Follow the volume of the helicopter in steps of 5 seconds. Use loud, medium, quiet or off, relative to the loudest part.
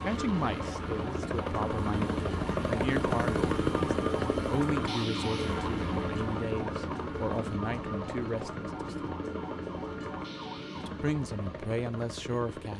loud, medium, medium.